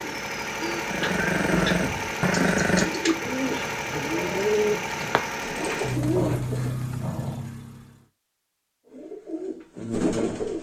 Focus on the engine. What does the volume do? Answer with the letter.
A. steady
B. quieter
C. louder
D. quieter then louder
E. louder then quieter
A.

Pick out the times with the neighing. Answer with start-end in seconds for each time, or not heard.
not heard.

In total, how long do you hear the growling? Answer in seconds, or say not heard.
3 s.